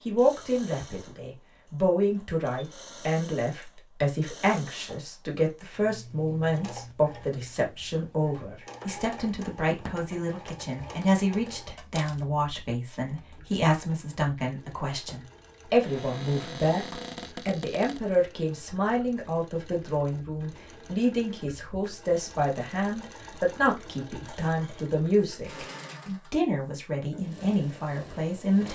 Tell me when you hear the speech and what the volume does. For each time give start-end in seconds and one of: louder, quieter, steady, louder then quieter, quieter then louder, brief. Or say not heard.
0.1-28.7 steady.